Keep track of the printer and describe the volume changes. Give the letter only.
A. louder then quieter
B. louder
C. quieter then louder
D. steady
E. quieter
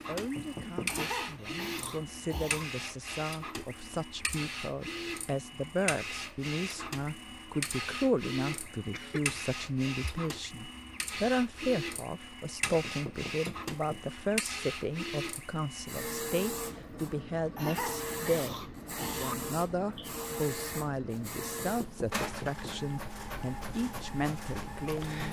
D.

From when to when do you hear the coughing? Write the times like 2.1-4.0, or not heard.
0.8-2.6, 8.7-9.3, 17.6-19.4.